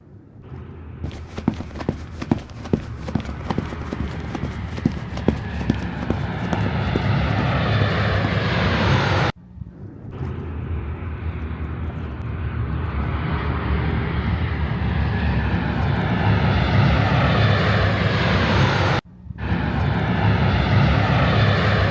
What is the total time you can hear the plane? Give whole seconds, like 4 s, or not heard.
22 s.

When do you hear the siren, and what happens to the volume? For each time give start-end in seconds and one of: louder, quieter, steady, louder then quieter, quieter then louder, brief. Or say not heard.
not heard.